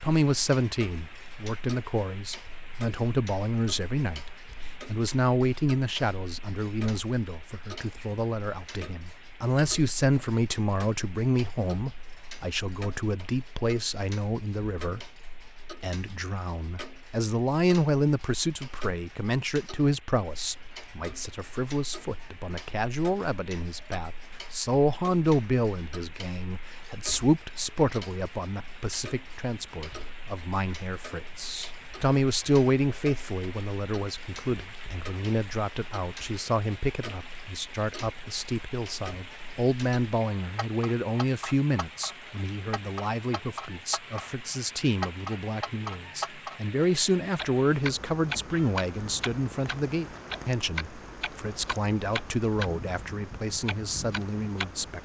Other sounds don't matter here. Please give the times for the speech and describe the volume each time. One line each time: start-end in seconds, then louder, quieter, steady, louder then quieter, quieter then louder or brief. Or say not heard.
0.0-55.0 steady.